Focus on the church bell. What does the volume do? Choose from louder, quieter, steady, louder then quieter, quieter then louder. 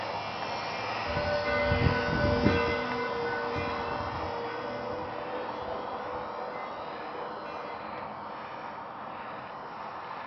quieter.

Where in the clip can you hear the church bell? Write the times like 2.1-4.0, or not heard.
1.0-8.0.